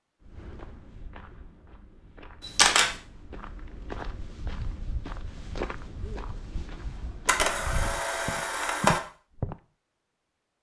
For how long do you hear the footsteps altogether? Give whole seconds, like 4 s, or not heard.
9 s.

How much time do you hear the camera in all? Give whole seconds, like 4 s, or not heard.
2 s.